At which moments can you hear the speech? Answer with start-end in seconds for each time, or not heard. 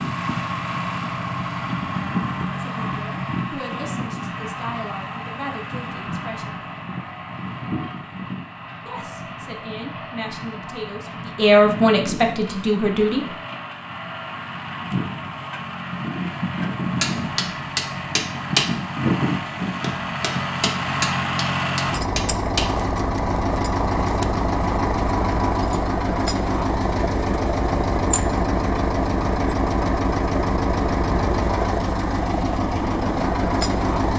2.5-6.6, 8.8-13.2.